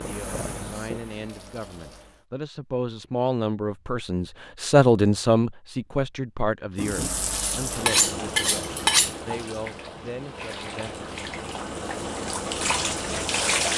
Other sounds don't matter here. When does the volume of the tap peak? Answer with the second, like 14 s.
13 s.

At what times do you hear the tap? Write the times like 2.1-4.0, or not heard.
0.0-2.2, 6.8-13.7.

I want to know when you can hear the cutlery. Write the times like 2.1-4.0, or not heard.
7.3-9.2.